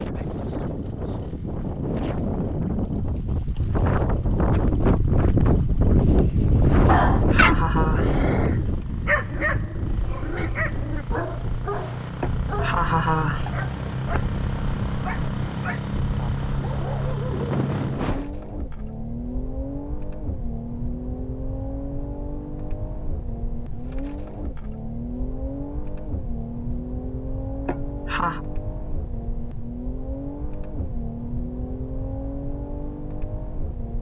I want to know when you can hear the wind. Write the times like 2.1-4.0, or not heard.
0.0-18.3.